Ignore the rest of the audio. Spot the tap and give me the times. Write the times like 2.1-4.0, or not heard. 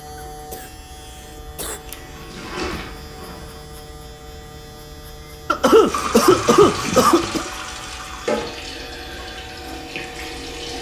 1.8-3.6, 5.8-10.7.